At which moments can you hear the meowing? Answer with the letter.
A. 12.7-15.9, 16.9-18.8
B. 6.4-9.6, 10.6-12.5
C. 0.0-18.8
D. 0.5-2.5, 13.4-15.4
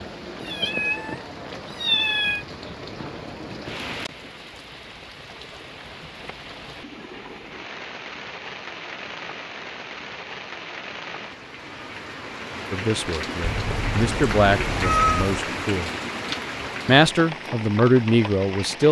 D.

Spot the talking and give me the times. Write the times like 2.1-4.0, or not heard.
12.7-15.9, 16.9-18.8.